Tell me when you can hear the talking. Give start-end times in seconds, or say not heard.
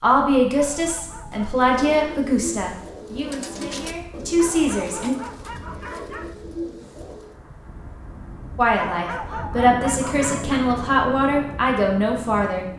0.0-5.2, 8.6-12.7.